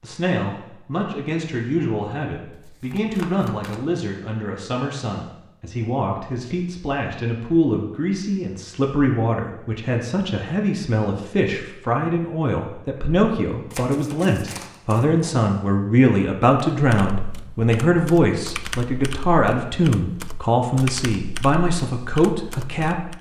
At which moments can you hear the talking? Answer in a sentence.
You can hear the talking from 0.0 to 23.1 s.